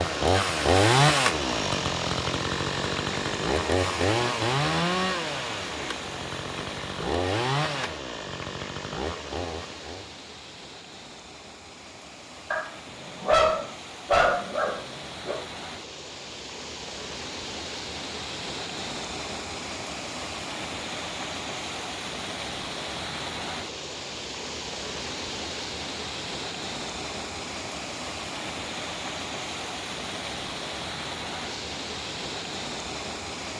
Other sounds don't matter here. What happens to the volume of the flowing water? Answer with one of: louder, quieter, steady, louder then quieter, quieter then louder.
quieter then louder.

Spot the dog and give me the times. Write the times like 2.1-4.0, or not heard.
12.5-15.4.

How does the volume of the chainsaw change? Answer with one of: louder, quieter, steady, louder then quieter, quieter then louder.
quieter.